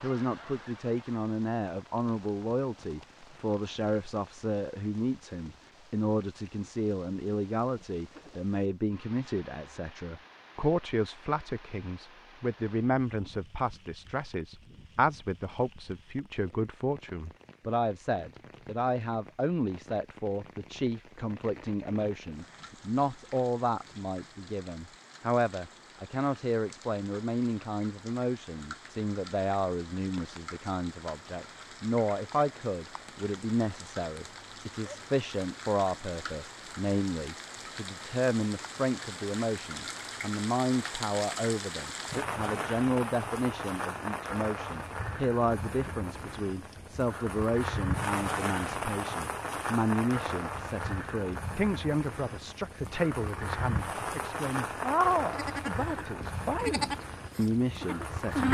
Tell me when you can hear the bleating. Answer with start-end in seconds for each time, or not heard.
55.3-58.4.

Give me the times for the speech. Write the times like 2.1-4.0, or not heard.
0.0-58.4.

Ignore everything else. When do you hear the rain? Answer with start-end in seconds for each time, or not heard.
0.0-58.4.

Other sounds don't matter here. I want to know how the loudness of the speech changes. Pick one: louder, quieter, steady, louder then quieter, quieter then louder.
steady.